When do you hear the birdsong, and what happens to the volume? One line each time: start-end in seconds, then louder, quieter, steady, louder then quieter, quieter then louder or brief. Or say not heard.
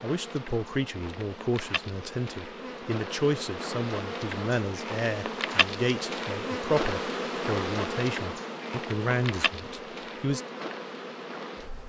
not heard.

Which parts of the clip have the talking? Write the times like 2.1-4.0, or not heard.
0.0-10.4.